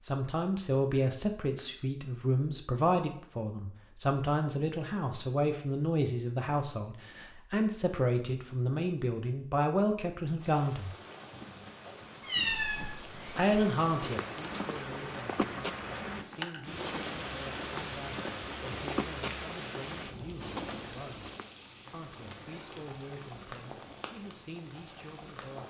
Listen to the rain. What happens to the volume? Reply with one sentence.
The loudness of the rain goes up, then down.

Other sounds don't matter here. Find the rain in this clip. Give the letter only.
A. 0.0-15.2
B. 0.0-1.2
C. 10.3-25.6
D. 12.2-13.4
C.